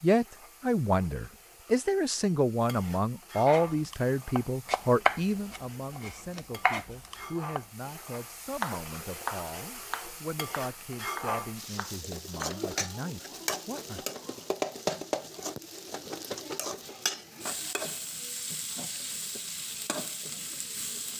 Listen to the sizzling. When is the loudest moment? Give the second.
15 s.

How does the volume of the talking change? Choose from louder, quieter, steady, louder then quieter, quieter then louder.
quieter.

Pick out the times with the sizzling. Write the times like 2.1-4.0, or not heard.
0.0-21.1.